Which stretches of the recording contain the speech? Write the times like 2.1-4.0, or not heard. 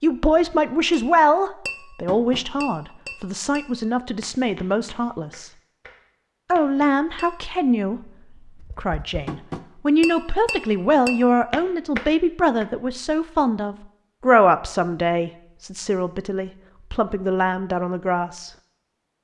0.0-5.5, 6.5-8.0, 8.6-18.5.